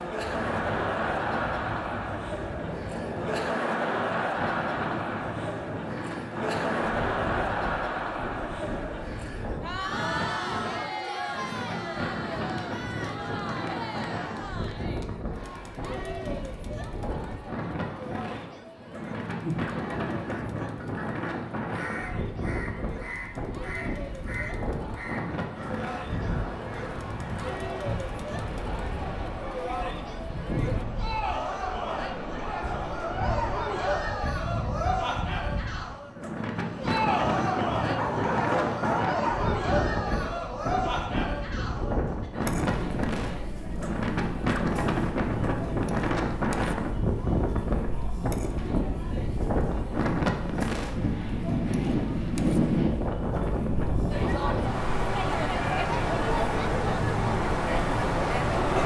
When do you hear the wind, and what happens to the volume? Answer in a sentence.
The wind can be heard from 0.1 to 58.8 s, getting louder.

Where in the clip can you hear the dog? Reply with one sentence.
You can hear the dog from 38.0 to 39.5 s.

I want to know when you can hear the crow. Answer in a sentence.
You can hear the crow from 19.2 to 27.6 s.